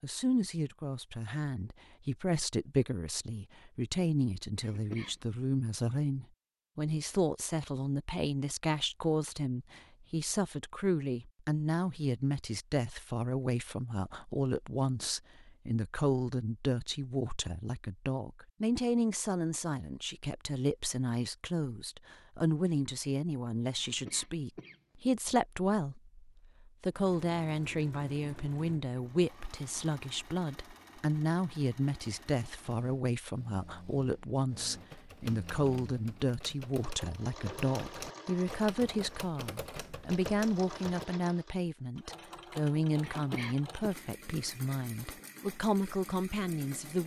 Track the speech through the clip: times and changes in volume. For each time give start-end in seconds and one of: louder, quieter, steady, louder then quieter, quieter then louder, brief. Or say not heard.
0.0-47.0 steady.